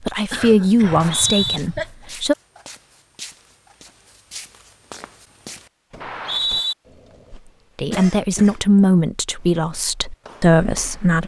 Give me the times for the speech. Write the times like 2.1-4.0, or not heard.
0.0-2.4, 7.8-11.2.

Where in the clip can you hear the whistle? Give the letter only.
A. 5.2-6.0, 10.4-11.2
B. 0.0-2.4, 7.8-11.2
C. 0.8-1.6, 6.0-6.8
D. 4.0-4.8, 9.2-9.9
C.